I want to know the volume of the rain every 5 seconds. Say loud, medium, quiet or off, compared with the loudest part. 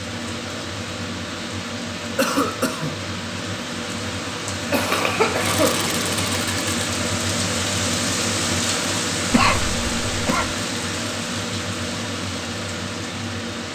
medium, loud, loud.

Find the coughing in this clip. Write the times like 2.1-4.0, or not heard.
2.1-3.0, 4.7-6.3, 9.3-10.5.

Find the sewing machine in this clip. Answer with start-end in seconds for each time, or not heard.
5.3-6.8.